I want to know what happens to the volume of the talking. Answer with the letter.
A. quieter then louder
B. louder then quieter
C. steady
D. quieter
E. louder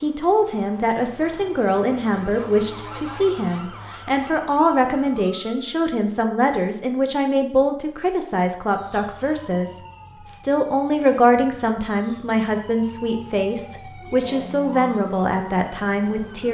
C.